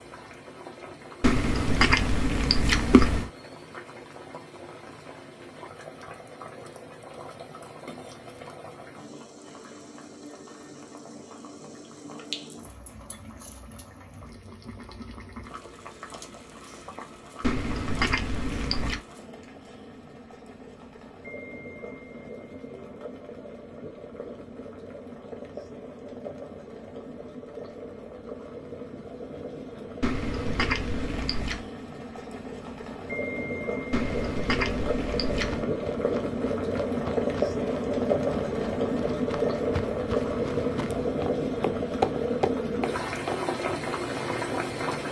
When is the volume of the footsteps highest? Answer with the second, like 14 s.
42 s.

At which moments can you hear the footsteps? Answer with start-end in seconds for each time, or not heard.
35.4-43.4.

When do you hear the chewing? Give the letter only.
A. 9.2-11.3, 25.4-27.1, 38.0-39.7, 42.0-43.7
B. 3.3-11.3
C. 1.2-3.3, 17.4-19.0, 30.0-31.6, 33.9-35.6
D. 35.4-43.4
C.